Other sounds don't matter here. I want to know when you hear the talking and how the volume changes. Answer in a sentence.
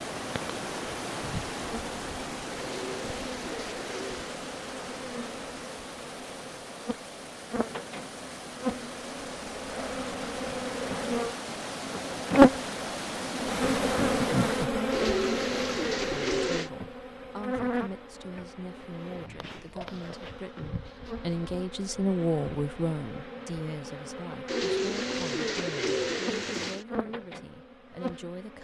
The talking can be heard from 16.1 to 28.5 s, getting louder then quieter.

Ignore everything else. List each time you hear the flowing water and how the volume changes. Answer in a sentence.
The flowing water can be heard from 0.0 to 14.7 s, getting quieter then louder.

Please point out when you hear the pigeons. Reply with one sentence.
You can hear the pigeons from 2.5 to 4.3 s, from 14.9 to 16.7 s and from 24.4 to 26.9 s.